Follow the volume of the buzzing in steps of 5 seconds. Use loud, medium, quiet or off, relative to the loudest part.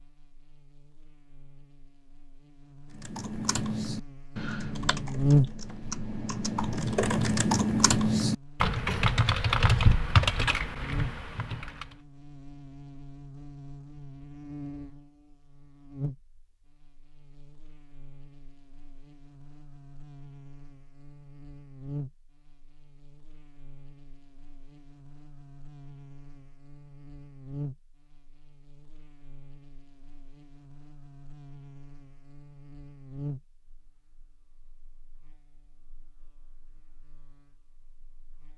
quiet, loud, quiet, quiet, quiet, quiet, quiet, quiet.